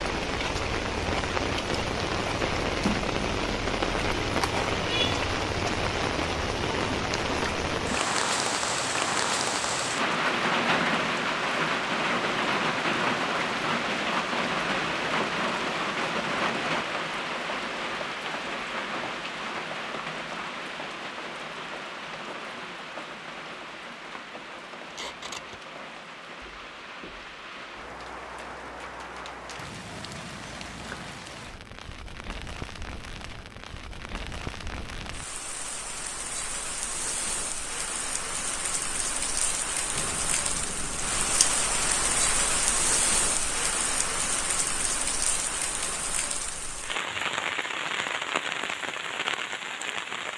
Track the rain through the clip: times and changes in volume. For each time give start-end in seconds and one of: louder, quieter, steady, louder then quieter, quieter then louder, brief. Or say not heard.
0.0-50.3 quieter then louder.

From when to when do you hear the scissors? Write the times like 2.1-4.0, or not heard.
4.2-4.7, 24.9-25.6, 40.0-41.5.